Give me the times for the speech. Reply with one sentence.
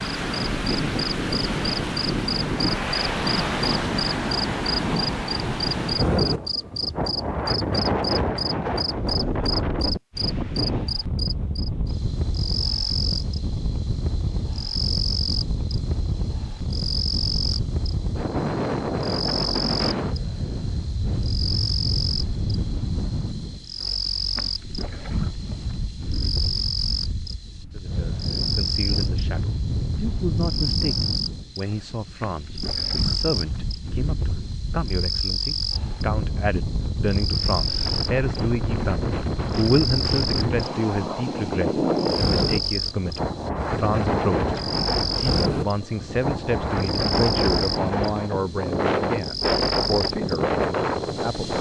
You can hear the speech from 27.7 to 51.5 s.